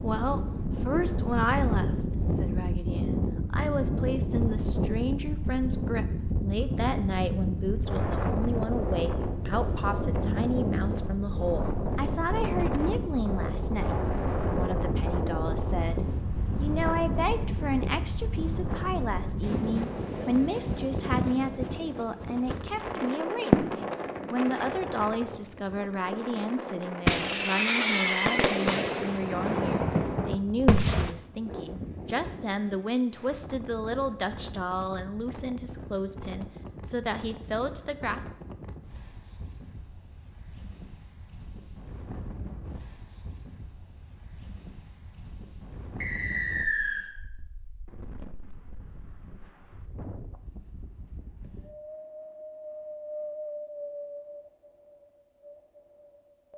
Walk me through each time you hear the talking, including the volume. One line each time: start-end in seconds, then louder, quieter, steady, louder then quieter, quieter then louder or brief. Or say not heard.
0.0-38.3 steady.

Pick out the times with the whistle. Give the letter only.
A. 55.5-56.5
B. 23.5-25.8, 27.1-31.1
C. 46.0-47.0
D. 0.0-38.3
C.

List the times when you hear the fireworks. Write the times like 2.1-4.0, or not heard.
23.5-25.8, 27.1-31.1.